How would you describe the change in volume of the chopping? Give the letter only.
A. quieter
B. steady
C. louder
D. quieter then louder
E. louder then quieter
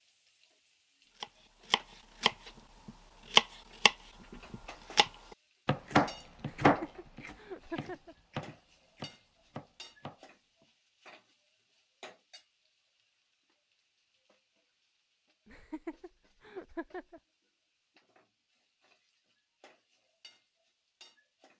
E.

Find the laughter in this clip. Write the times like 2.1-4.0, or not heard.
6.4-8.2, 15.4-17.2.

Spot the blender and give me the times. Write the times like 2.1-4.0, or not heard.
not heard.